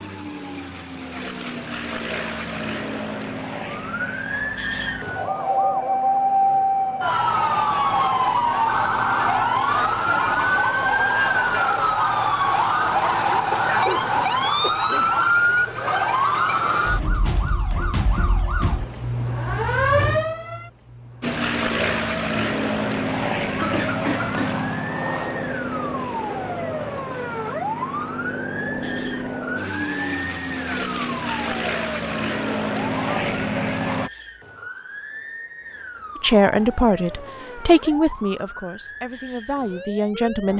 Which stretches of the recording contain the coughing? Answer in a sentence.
You can hear the coughing from 13.7 to 15.2 s and from 23.6 to 24.6 s.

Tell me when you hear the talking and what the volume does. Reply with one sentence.
The talking can be heard from 36.2 to 40.5 s, getting quieter then louder.